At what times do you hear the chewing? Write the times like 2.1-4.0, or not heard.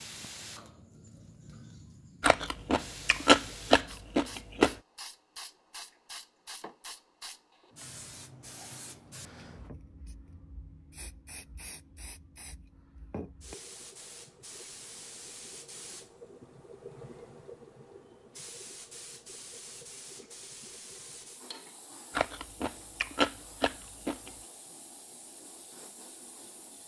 2.2-4.8, 22.1-24.3.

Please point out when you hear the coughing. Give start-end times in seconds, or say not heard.
not heard.